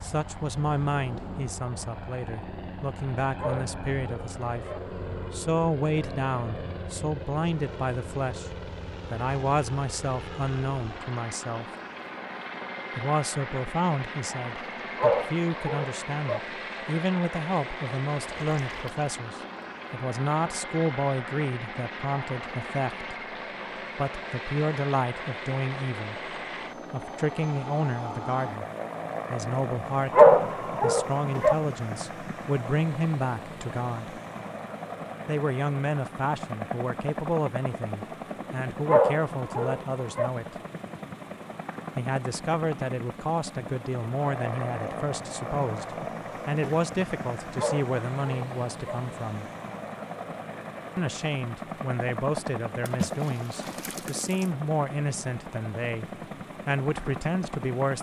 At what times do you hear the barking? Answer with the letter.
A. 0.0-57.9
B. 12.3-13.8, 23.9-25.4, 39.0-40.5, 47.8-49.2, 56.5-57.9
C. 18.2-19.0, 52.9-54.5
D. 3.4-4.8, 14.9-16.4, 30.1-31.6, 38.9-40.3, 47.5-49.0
D.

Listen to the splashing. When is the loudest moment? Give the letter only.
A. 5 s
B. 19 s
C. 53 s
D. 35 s
C.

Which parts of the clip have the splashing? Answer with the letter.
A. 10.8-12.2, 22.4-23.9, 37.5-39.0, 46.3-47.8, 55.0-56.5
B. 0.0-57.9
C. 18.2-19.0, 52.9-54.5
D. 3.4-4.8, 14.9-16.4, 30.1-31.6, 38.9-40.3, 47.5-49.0
C.